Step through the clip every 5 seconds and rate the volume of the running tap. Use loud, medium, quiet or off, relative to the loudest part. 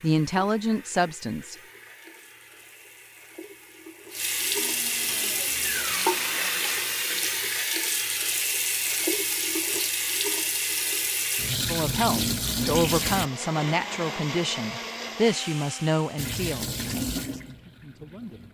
medium, loud, loud, medium.